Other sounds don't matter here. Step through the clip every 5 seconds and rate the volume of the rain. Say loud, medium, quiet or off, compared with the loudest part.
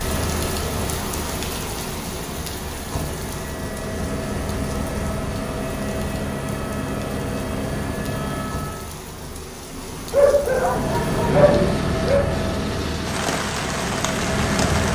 loud, medium, loud.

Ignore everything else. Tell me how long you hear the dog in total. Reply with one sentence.
You can hear the dog for 2 seconds altogether.